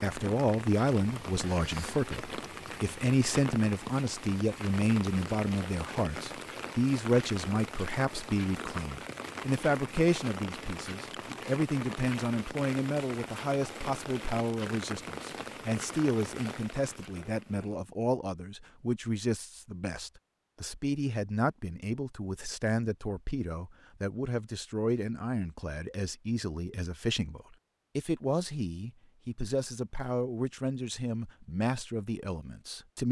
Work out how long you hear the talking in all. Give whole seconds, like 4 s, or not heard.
33 s.